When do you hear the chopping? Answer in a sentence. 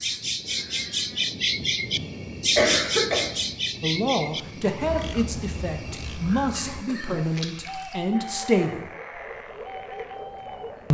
You can't hear the chopping here.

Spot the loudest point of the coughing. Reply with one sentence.
The volume of the coughing peaks at 3 seconds.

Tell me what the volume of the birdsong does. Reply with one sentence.
The volume of the birdsong goes down.